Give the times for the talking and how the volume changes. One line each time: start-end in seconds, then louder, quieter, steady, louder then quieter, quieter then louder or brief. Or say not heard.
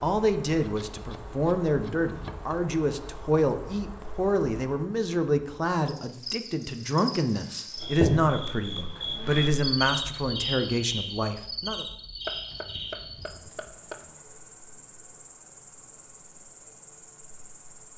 0.0-11.8 steady.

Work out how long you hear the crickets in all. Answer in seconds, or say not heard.
18 s.